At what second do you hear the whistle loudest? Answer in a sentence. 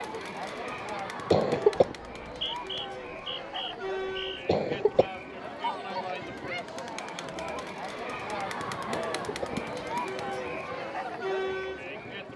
The loudest moment of the whistle is at 3 seconds.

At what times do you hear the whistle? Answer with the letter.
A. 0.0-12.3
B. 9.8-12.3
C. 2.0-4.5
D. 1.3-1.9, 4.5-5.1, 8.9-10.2
C.